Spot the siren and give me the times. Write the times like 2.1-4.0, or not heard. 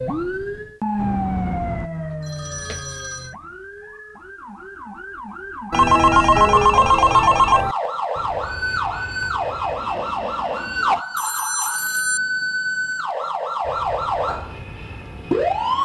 0.0-15.8.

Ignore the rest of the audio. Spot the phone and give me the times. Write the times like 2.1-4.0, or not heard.
0.9-3.4, 5.7-7.8, 11.2-12.2.